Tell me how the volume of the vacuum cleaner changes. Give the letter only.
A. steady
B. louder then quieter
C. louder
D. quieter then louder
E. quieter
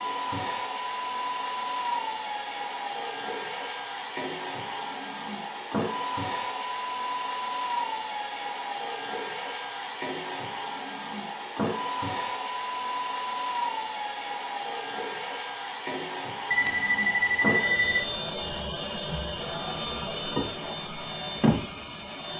A.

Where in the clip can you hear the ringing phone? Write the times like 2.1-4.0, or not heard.
16.5-18.1.